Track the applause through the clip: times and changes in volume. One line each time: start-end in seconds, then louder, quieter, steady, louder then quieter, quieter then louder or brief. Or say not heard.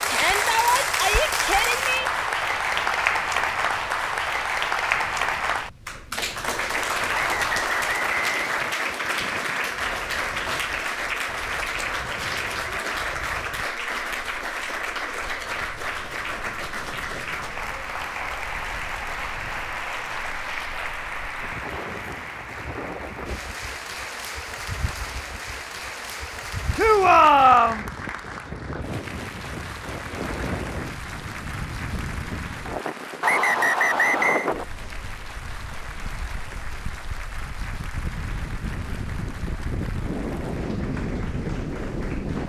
0.0-42.4 quieter.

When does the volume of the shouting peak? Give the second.
27 s.